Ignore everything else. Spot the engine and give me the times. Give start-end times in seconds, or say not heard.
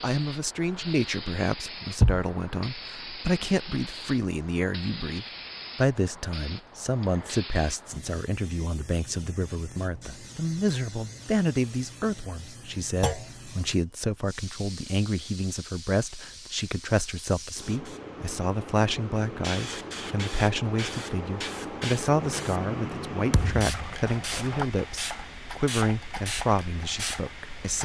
22.1-24.6.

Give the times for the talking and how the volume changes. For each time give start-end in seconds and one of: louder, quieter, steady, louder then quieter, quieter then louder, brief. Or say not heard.
0.0-27.8 steady.